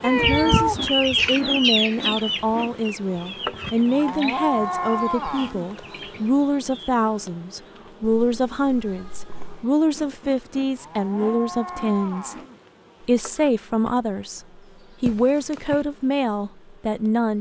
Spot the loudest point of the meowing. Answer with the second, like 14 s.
1 s.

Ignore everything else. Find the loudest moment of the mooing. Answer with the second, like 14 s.
5 s.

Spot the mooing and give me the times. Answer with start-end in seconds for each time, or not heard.
3.9-6.0, 10.8-12.6.